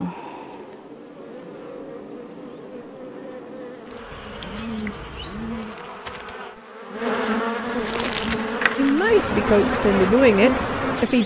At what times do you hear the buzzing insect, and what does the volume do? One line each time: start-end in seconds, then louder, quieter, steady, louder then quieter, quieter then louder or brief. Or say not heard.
0.0-11.2 louder.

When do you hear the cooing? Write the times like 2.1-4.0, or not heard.
4.1-5.8.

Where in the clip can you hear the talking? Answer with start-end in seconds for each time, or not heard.
8.8-11.2.